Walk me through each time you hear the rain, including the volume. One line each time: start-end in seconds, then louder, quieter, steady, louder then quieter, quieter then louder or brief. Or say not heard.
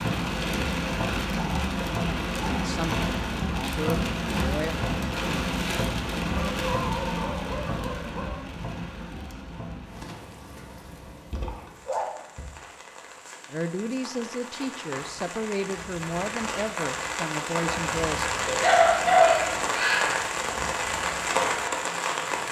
0.0-22.4 quieter then louder.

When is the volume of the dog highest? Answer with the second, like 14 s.
19 s.